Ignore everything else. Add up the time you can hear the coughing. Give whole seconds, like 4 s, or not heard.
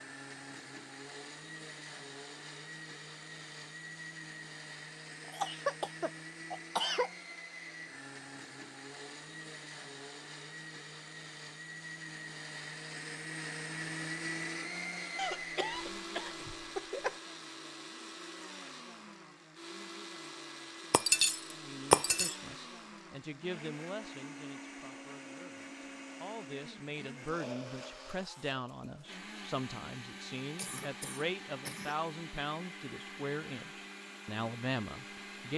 5 s.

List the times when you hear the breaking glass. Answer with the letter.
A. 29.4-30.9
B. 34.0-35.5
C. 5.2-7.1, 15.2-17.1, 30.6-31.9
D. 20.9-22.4
D.